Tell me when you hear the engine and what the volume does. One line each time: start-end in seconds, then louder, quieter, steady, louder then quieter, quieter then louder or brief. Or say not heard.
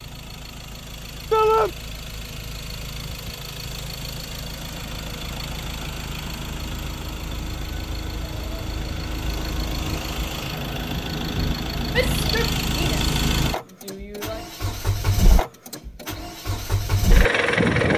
0.0-17.9 louder.